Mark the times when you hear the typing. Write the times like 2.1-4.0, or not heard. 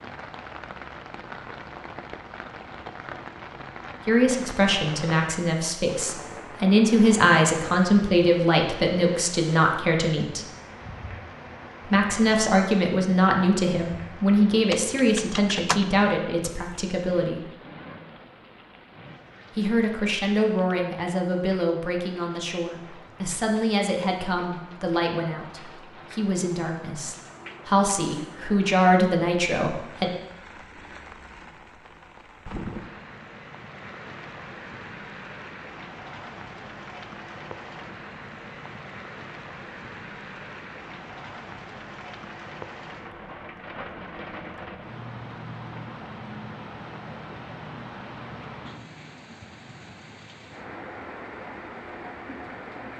14.5-15.8.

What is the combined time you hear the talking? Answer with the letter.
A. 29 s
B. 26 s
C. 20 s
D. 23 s
D.